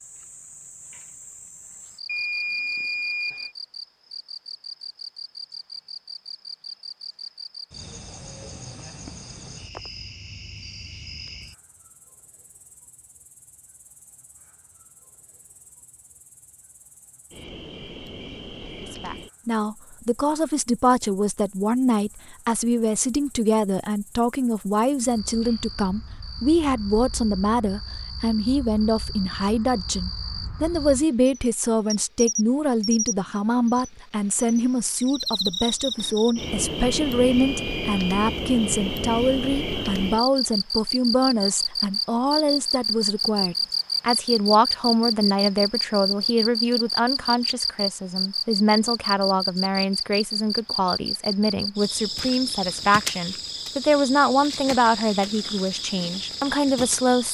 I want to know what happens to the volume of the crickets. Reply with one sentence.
The loudness of the crickets goes down, then up.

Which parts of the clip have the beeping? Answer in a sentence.
You can hear the beeping from 2.0 to 3.5 s and from 37.4 to 38.4 s.